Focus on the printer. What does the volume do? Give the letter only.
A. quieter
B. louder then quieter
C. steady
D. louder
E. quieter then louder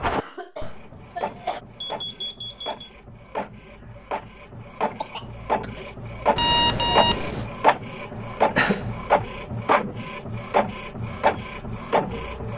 D.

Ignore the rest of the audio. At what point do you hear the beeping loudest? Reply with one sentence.
The loudest moment of the beeping is at 7 seconds.